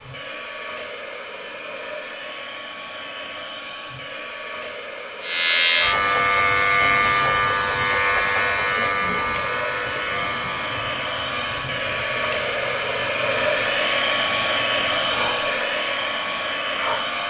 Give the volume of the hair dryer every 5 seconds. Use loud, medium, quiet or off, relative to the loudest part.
medium, medium, loud, loud.